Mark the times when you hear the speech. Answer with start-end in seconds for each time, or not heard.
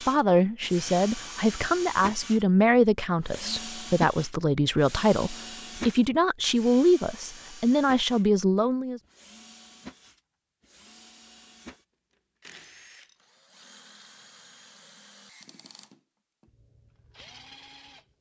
0.1-9.0.